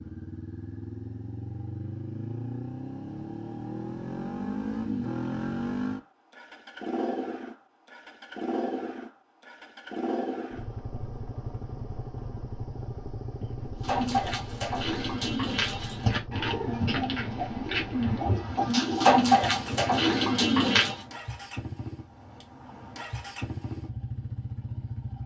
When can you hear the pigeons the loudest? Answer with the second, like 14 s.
19 s.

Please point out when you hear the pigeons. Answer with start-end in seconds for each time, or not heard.
13.8-21.1.